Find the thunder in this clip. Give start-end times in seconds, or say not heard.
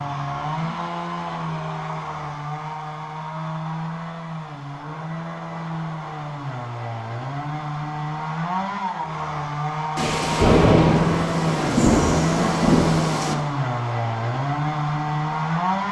9.9-13.3.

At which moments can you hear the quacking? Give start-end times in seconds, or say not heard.
not heard.